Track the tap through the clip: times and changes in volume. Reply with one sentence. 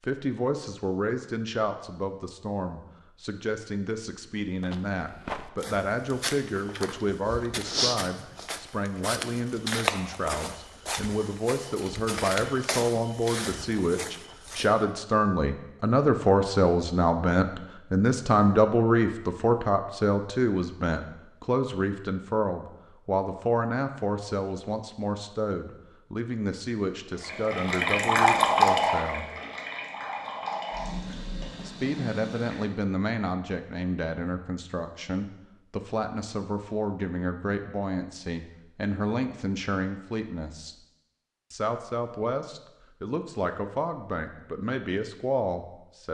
The tap can be heard from 27.1 to 32.7 s, getting quieter.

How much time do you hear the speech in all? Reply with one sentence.
The speech can be heard for 43 seconds in total.